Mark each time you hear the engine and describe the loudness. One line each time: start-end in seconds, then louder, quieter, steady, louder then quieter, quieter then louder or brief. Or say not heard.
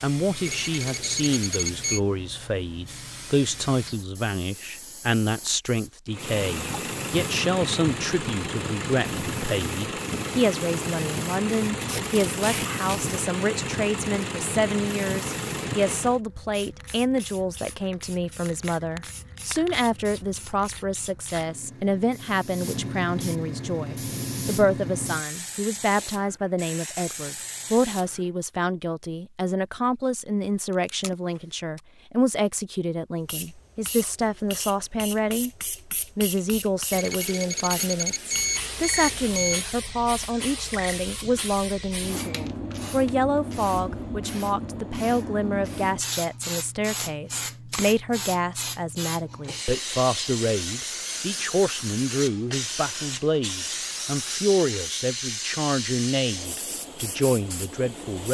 6.0-16.2 steady.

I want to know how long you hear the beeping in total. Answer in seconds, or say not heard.
4 s.